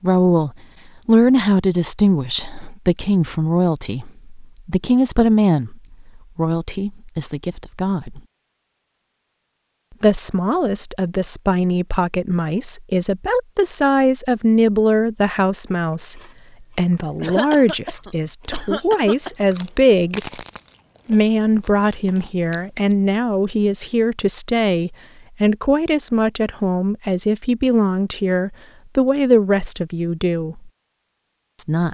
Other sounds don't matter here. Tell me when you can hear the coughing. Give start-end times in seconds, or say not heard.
17.0-19.4.